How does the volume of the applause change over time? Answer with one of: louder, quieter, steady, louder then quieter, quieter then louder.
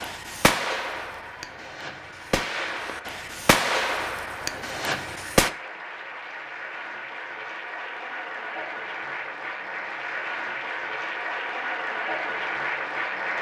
louder.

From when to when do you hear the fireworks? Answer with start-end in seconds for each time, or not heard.
0.0-5.5.